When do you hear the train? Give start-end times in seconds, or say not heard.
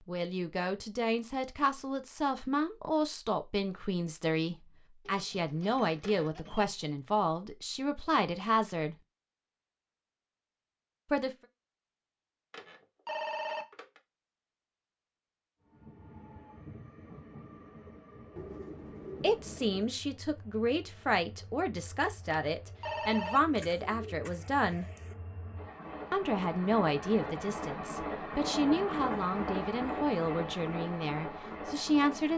15.6-32.3.